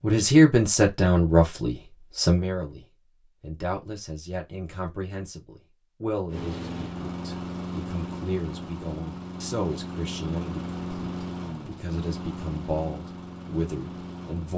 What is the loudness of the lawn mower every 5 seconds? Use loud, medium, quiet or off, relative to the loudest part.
off, loud, loud.